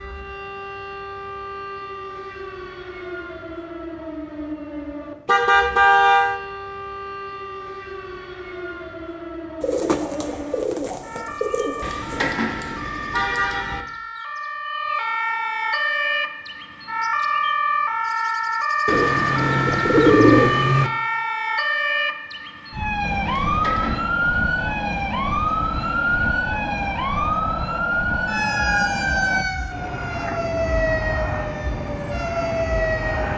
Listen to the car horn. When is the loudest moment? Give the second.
6 s.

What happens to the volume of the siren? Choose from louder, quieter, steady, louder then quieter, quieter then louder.
louder.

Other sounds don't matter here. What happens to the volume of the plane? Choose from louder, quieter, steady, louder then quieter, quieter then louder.
steady.